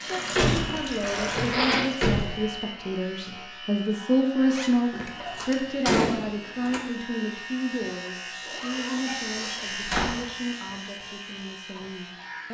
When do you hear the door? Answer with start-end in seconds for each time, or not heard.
0.3-2.5, 4.9-6.8, 9.1-10.2.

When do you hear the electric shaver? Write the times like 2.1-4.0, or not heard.
0.0-12.4.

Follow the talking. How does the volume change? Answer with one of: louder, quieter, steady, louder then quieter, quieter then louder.
louder then quieter.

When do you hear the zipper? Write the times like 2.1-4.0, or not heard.
1.0-1.9, 4.5-5.8, 8.4-9.7.